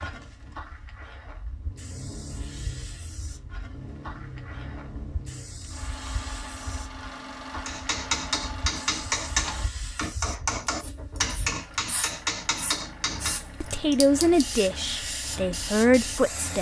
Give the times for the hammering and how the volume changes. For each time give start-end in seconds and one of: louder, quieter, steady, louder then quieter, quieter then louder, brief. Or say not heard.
7.7-13.4 steady.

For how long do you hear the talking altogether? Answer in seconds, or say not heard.
3 s.